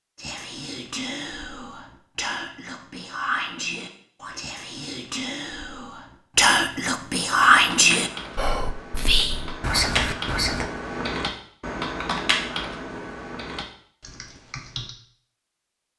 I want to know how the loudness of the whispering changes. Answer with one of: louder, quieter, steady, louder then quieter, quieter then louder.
louder then quieter.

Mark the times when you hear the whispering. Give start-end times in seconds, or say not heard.
0.1-10.7.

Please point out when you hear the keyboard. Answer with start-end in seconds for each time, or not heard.
7.2-14.9.